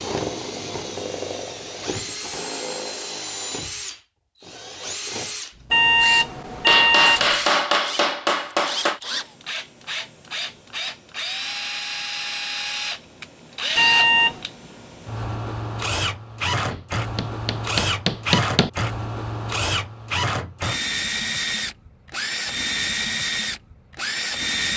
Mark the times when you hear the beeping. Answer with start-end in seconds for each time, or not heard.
5.7-7.3, 13.8-14.4.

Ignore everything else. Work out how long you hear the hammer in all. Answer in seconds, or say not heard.
4 s.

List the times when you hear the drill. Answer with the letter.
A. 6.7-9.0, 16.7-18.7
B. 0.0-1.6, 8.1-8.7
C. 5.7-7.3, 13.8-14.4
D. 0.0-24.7
D.